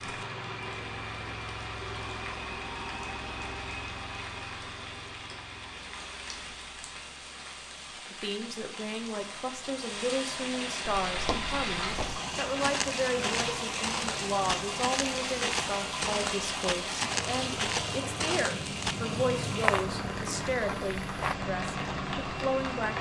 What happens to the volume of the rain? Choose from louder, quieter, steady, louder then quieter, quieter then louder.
louder.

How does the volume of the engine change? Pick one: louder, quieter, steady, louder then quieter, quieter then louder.
quieter then louder.